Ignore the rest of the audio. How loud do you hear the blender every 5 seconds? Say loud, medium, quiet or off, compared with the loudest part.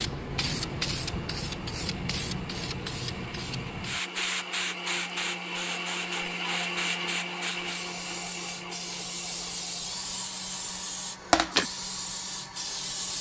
medium, loud, medium.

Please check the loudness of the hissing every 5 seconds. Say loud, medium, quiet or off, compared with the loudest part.
loud, medium, loud.